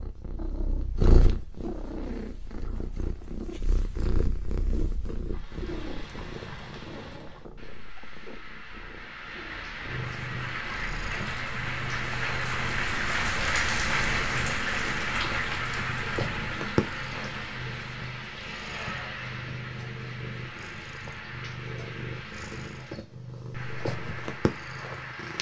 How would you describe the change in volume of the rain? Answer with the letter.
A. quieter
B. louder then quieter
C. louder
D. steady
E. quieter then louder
B.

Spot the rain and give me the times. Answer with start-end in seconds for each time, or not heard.
5.2-25.3.